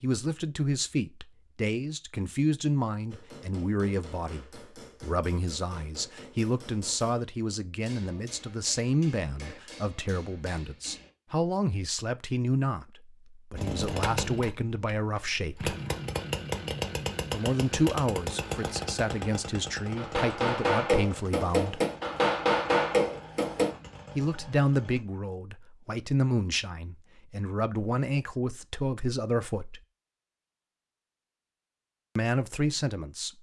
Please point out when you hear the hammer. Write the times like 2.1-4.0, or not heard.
3.1-11.1, 19.9-23.8.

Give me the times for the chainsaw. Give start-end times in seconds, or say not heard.
13.6-25.0.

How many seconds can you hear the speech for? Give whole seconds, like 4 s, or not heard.
27 s.